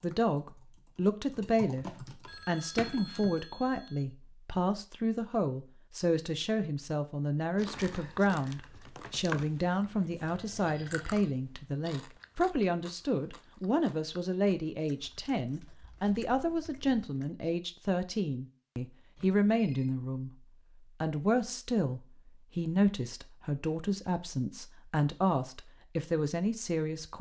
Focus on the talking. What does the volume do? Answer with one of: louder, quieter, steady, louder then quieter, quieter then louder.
steady.